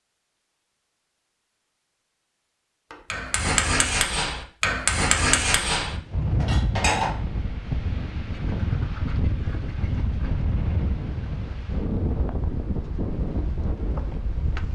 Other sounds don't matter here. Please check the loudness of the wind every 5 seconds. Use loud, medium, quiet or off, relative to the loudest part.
off, loud, loud.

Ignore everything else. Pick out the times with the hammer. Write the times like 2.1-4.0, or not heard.
2.9-7.1.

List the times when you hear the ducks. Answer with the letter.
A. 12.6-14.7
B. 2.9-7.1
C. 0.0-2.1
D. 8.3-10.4
D.